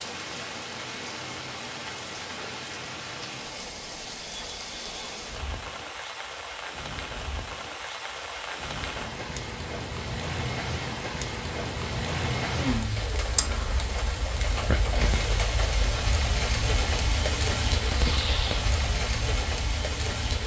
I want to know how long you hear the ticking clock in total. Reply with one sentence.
The ticking clock can't be heard in this clip.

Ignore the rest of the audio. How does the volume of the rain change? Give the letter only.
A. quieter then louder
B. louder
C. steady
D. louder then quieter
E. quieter
B.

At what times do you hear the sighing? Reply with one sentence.
You can hear the sighing from 12.4 to 13.1 s.